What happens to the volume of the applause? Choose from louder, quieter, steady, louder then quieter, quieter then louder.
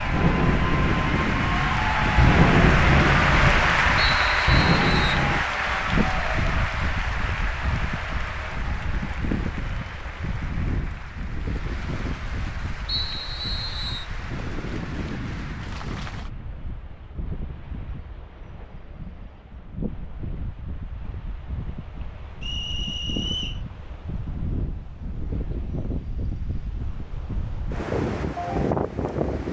quieter.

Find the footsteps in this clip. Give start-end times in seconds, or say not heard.
not heard.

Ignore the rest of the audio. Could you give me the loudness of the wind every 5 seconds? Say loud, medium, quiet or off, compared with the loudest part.
loud, loud, medium, medium, medium, loud.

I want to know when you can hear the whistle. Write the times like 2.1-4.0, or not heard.
4.0-5.2, 12.8-14.1, 22.4-23.6.